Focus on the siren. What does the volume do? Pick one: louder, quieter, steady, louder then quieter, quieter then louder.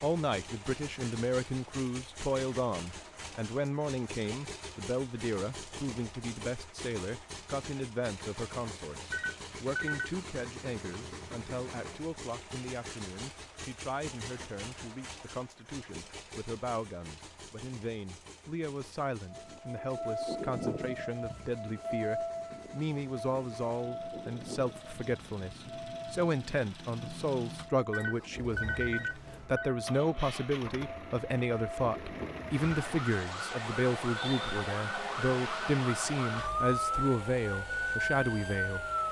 quieter then louder.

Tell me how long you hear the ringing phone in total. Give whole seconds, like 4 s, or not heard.
3 s.